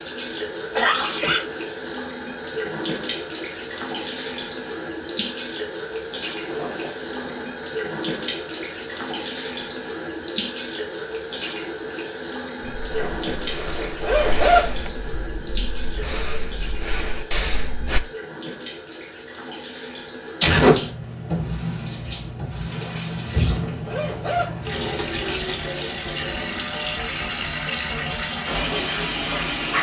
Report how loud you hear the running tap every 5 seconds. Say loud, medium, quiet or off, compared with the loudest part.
loud, loud, loud, medium, loud, loud.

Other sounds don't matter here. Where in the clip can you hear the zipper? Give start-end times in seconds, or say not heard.
6.5-7.5, 12.9-14.6, 22.7-24.4.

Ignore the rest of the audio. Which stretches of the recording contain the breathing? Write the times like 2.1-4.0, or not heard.
12.6-18.0.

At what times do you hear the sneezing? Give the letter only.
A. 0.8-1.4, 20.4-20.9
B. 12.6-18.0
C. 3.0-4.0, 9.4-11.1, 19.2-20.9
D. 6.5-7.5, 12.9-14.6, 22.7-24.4
A.